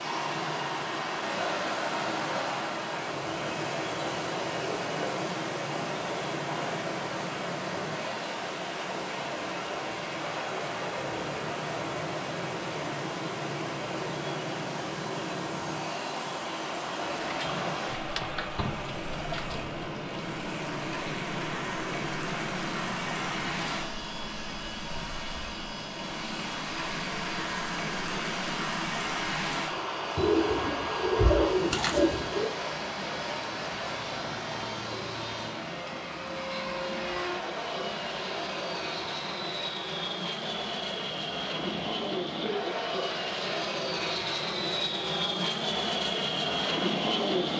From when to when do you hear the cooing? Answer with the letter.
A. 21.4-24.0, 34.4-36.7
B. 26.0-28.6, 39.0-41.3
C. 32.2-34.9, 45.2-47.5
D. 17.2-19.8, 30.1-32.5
D.